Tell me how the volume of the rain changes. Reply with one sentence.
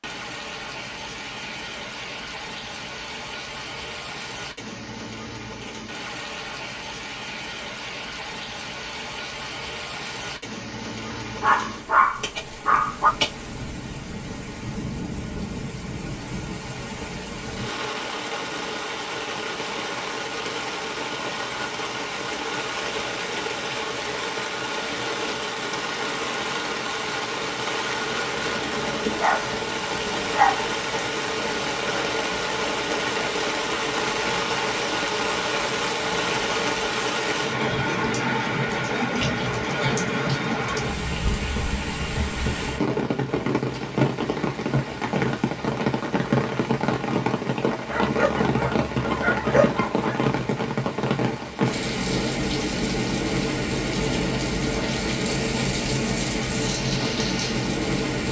The volume of the rain goes up.